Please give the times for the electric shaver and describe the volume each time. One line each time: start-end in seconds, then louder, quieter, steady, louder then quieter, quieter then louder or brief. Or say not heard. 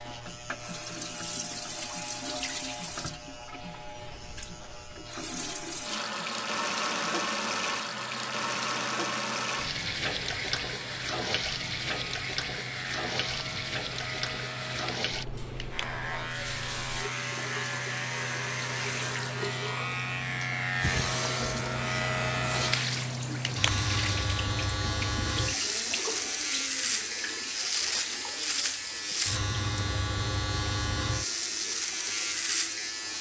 0.0-33.1 louder.